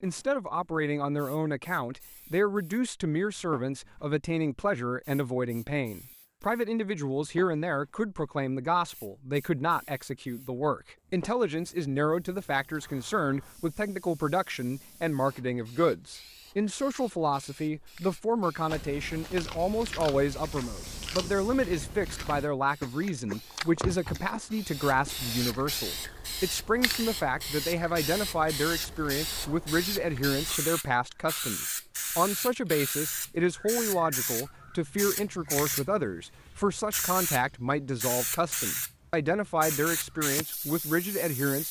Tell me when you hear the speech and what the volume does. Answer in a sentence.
You can hear the speech from 0.0 to 41.6 s, at a steady volume.